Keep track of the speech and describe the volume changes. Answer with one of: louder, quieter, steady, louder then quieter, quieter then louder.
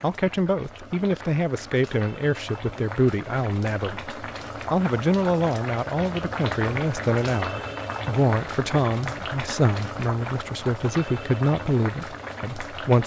steady.